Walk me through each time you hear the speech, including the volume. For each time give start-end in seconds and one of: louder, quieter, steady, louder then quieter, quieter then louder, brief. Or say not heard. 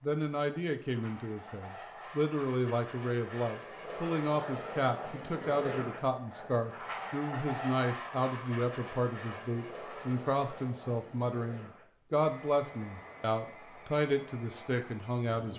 0.0-15.5 steady.